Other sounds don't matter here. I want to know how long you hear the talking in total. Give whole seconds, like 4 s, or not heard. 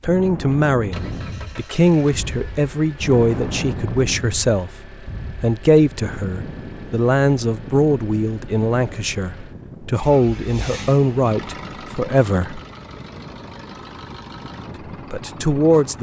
13 s.